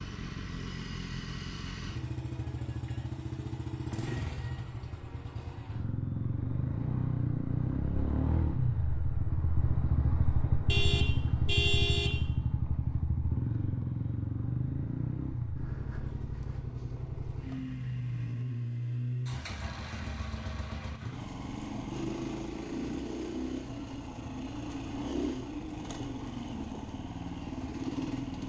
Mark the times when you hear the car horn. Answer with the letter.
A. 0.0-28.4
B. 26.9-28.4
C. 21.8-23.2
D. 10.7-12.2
D.